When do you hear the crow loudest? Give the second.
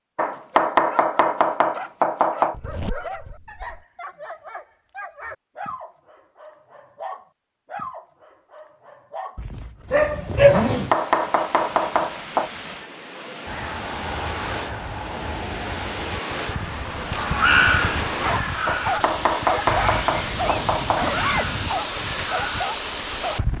18 s.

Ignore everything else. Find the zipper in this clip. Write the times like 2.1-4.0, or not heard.
2.5-3.8, 9.3-10.9, 19.6-21.7.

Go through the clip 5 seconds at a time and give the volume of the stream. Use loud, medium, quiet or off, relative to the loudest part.
off, off, medium, loud, loud.